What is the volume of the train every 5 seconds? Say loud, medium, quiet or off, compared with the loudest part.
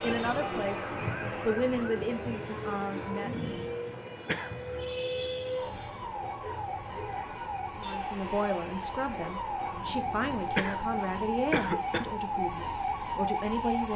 loud, medium, medium.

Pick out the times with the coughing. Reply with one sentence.
The coughing can be heard from 4.2 to 4.8 s and from 10.6 to 12.1 s.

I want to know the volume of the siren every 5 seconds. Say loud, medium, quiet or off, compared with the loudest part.
medium, loud, loud.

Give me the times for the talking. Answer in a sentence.
The talking can be heard from 0.0 to 3.5 s and from 7.8 to 13.9 s.